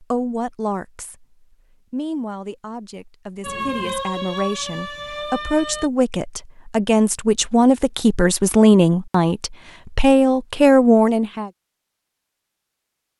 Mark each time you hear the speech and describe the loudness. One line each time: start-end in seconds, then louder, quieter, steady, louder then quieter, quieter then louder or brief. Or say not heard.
0.0-11.5 louder.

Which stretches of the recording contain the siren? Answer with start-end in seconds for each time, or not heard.
3.4-5.9.